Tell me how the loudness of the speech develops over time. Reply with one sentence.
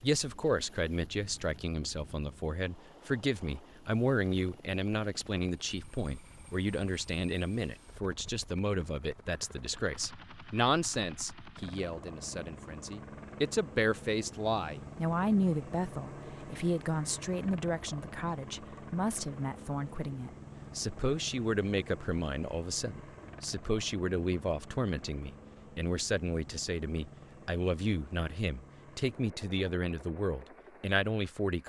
The volume of the speech stays about the same.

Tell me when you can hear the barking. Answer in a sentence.
The barking can't be heard in this clip.